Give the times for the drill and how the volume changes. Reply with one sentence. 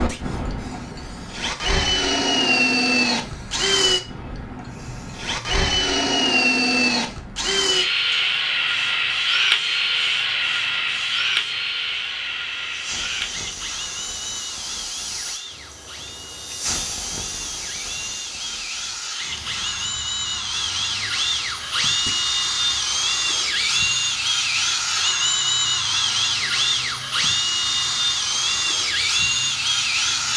The drill can be heard from 0.0 to 30.3 s, getting quieter then louder.